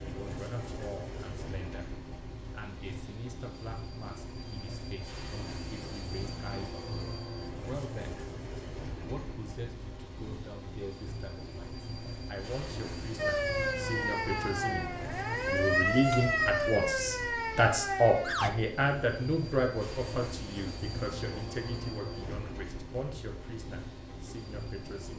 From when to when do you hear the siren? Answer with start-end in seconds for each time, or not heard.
13.2-18.5.